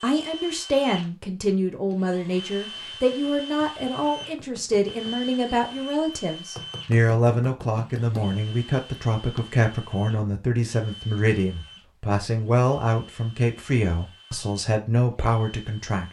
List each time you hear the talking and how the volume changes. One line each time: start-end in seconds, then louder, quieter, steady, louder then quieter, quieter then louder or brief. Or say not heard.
0.0-16.0 steady.